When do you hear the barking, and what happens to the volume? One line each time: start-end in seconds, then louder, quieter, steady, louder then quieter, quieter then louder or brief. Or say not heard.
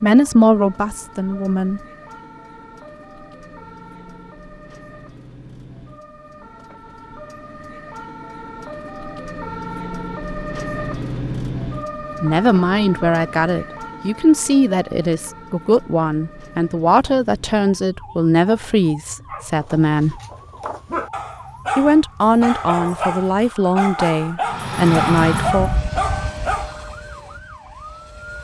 19.2-26.8 louder.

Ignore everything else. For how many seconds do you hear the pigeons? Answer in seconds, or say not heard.
not heard.